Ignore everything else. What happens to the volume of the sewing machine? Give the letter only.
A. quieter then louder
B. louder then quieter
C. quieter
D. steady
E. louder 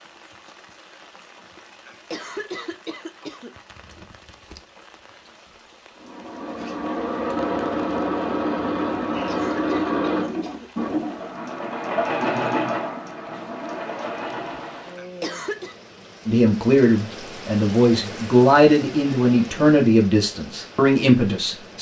C.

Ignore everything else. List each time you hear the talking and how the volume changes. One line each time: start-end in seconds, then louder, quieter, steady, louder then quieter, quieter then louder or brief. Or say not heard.
16.2-21.7 steady.